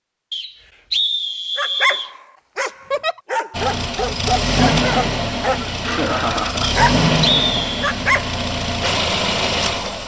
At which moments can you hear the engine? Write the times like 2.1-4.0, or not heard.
3.5-10.0.